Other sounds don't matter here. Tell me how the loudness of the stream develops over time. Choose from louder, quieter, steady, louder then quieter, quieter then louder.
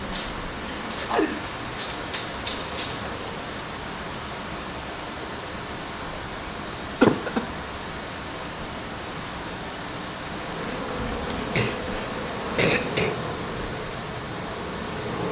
steady.